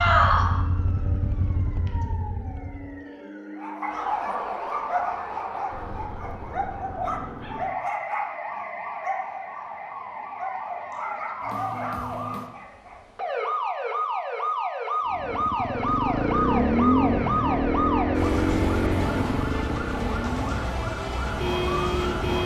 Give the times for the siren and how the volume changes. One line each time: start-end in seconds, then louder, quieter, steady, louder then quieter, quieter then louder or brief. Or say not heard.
0.0-22.4 louder.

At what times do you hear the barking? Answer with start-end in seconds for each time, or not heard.
3.6-13.0.